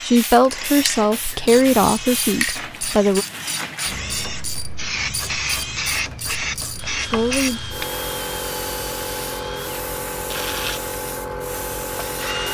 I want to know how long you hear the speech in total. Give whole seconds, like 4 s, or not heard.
4 s.